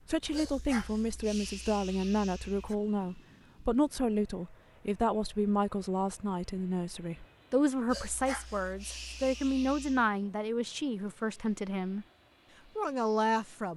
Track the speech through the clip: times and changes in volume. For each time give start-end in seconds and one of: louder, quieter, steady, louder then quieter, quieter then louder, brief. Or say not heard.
0.1-12.1 steady
12.8-13.7 brief.